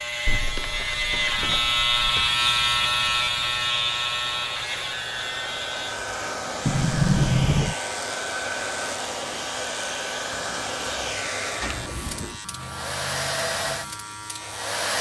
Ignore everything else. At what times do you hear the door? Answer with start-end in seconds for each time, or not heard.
0.2-2.3, 6.7-7.8, 11.6-12.4.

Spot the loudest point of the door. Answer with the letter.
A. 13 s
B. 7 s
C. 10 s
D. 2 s
B.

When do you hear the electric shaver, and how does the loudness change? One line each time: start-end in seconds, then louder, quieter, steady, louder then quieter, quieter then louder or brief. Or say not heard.
0.0-14.9 quieter.